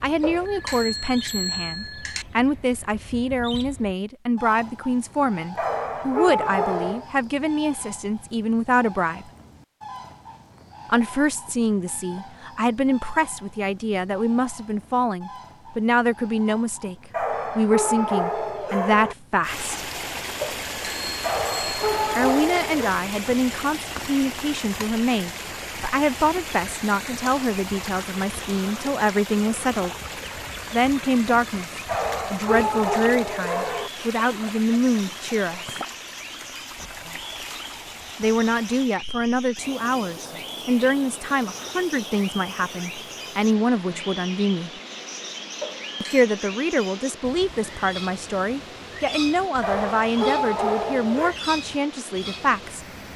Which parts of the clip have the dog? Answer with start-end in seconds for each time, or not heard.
5.5-7.0, 17.1-19.1, 21.2-22.9, 31.9-33.9, 49.6-51.4.